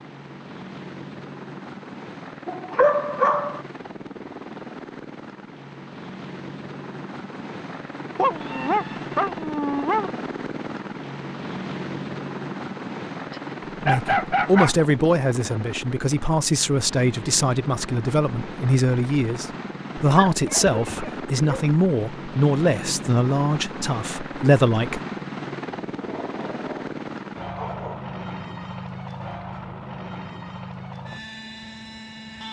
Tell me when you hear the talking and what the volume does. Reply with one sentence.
The talking can be heard from 13.8 to 25.0 s, at a steady volume.